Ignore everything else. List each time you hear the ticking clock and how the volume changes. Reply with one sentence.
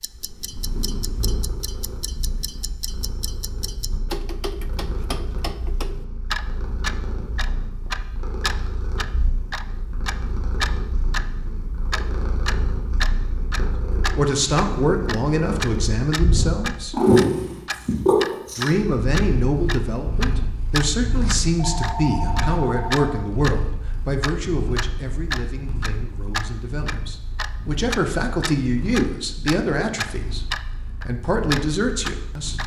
You can hear the ticking clock from 0.0 to 11.3 s, getting louder; and from 11.9 to 32.6 s, at a steady volume.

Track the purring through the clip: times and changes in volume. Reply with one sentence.
You can hear the purring from 0.0 to 32.6 s, getting louder then quieter.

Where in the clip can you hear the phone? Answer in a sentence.
You can hear the phone from 21.6 to 23.1 s.